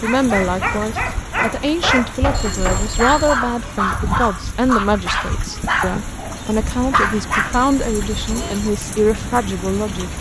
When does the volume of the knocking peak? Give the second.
3 s.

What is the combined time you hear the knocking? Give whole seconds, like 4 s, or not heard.
2 s.